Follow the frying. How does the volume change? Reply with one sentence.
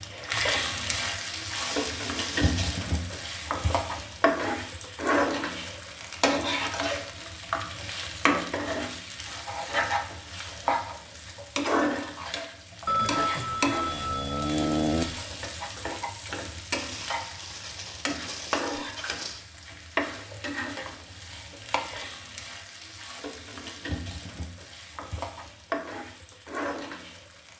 The loudness of the frying goes down.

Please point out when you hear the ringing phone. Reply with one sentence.
You can hear the ringing phone from 12.8 to 15.2 s.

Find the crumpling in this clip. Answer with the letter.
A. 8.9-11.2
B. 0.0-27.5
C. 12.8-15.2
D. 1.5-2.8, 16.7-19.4
D.